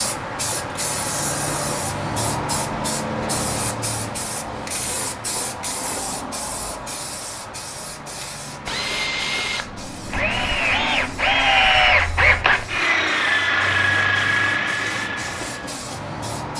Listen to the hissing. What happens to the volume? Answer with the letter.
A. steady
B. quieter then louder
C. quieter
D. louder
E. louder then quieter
C.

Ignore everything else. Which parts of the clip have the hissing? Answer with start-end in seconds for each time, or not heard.
0.0-16.5.